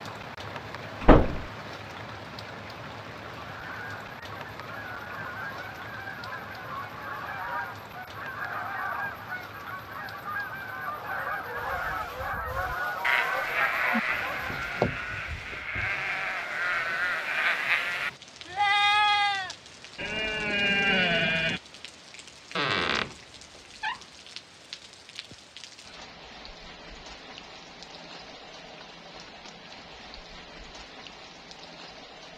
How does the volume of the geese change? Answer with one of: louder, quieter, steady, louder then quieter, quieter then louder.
louder.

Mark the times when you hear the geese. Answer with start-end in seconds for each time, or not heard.
3.4-14.8.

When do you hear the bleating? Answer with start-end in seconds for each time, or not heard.
11.7-21.6.